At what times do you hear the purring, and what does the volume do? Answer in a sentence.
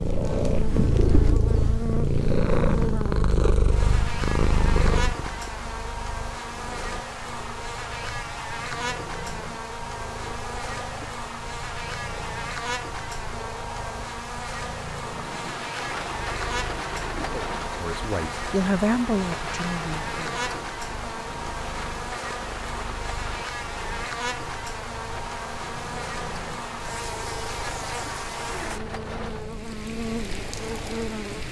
The purring can be heard from 0.0 to 31.4 s, getting quieter.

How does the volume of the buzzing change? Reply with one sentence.
The loudness of the buzzing stays about the same.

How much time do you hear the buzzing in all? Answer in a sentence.
You can hear the buzzing for 31 seconds altogether.